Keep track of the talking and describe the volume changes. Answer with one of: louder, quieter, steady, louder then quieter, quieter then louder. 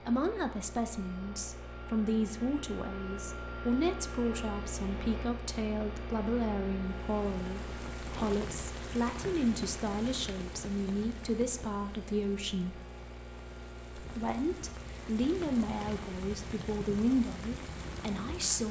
steady.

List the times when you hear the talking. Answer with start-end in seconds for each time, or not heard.
0.0-12.8, 14.0-18.6.